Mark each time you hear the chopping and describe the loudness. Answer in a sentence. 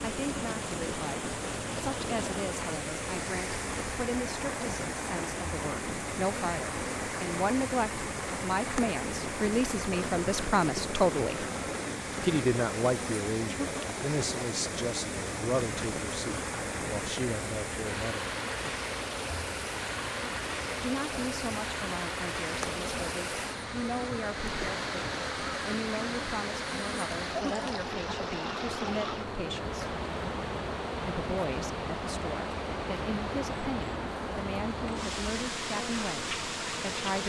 You can't hear the chopping here.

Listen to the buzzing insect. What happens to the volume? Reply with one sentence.
The loudness of the buzzing insect stays about the same.